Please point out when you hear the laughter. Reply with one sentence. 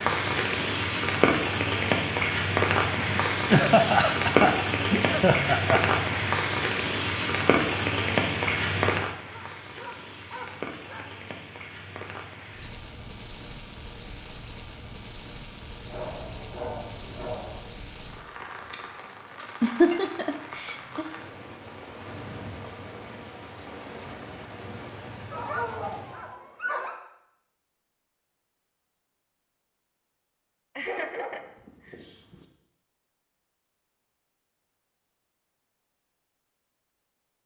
You can hear the laughter from 3.5 to 6.0 s, from 19.6 to 21.1 s and from 30.8 to 32.0 s.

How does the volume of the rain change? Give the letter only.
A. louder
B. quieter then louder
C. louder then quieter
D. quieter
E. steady
D.